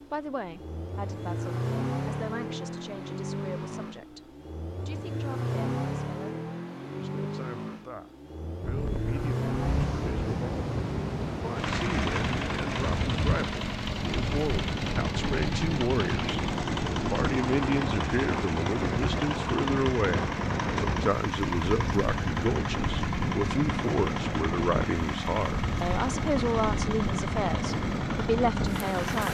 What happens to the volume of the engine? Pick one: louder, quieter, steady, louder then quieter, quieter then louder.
steady.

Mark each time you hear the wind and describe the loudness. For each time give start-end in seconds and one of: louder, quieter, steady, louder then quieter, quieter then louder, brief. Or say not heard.
8.6-29.2 steady.